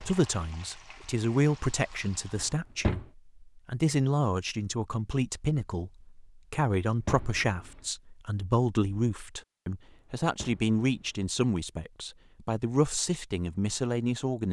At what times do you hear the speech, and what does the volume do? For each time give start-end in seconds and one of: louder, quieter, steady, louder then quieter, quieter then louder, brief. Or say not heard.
0.0-14.4 steady.